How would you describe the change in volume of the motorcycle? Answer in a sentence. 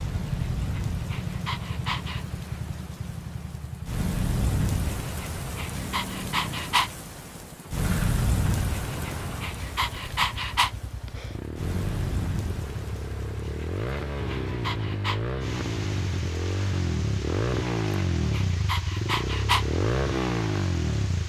The loudness of the motorcycle goes up.